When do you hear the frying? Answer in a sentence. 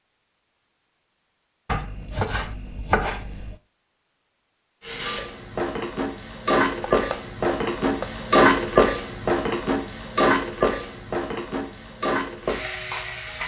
The frying can be heard from 4.8 to 13.4 s.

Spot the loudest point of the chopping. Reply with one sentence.
The volume of the chopping peaks at 3 seconds.